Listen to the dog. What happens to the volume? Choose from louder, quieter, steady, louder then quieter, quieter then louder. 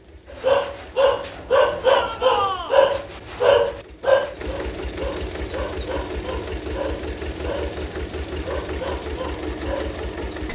quieter.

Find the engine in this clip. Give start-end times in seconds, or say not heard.
0.0-10.5.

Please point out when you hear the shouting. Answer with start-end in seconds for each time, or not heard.
1.9-2.8.